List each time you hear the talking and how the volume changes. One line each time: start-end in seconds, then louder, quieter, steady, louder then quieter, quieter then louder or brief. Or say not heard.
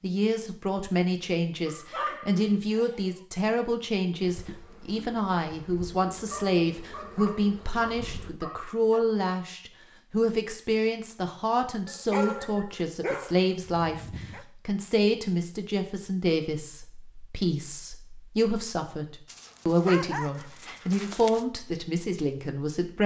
0.0-23.0 steady.